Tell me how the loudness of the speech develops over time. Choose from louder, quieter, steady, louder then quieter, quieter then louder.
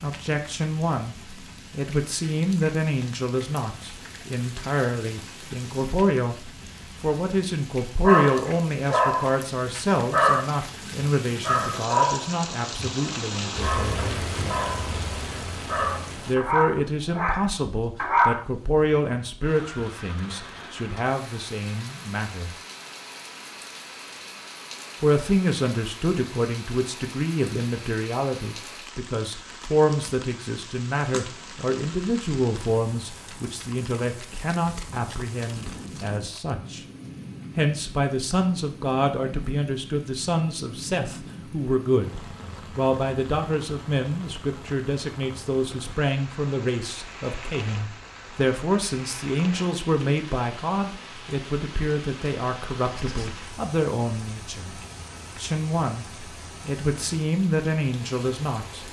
steady.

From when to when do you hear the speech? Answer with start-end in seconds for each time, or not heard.
0.0-14.2, 16.2-22.5, 25.0-36.8, 37.5-54.8, 55.4-58.8.